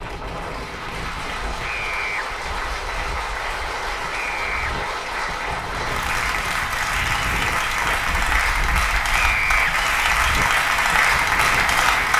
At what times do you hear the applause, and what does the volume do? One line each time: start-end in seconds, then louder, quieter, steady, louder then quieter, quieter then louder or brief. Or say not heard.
0.0-12.1 louder.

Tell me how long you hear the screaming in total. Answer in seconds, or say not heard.
2 s.